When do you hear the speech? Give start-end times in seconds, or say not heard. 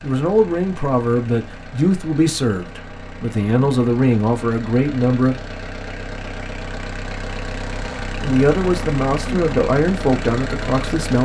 0.0-5.3, 8.2-11.2.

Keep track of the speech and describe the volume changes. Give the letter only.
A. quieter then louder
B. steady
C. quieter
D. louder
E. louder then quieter
B.